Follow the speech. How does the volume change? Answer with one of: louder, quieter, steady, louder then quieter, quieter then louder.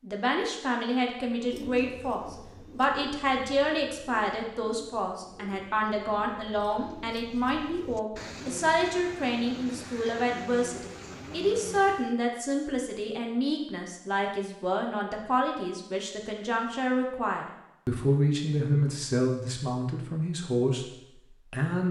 steady.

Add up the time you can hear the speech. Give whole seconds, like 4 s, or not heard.
22 s.